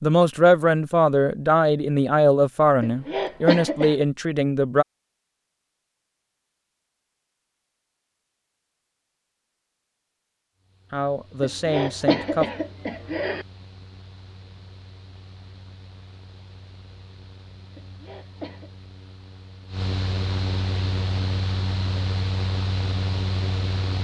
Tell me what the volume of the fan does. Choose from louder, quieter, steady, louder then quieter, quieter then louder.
louder.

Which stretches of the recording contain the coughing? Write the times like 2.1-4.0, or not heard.
2.8-4.0, 11.4-13.4, 17.8-18.7.